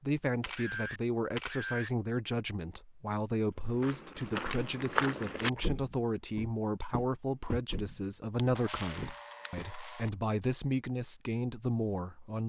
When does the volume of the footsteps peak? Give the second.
5 s.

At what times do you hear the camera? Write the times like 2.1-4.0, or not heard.
0.4-1.9, 4.5-5.2, 8.3-10.1.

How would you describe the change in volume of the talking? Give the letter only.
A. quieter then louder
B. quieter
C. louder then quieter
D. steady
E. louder
D.